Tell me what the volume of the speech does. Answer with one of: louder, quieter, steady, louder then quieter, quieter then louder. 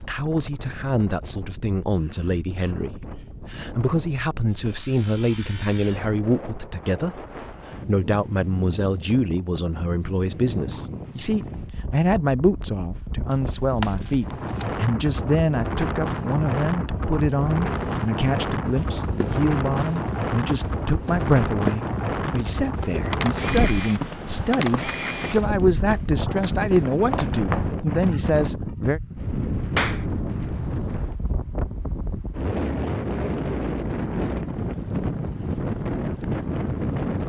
steady.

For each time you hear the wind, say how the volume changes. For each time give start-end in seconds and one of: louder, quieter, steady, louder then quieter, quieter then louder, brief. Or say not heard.
0.0-37.2 louder.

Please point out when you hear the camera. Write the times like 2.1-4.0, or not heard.
13.3-14.8, 23.1-25.4.